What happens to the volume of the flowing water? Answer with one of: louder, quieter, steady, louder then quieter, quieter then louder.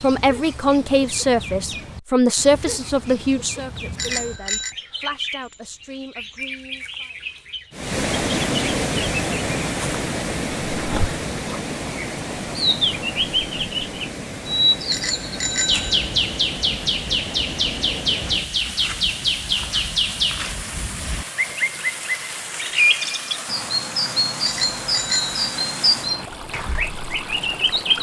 quieter.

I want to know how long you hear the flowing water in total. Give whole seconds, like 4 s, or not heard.
20 s.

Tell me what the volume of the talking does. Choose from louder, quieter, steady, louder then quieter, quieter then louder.
quieter.